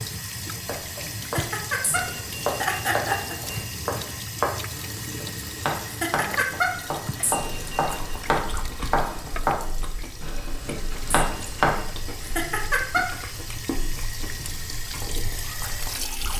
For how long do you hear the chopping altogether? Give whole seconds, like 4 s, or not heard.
11 s.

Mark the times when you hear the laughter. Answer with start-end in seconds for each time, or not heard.
1.2-3.4, 5.8-6.8, 12.2-13.1.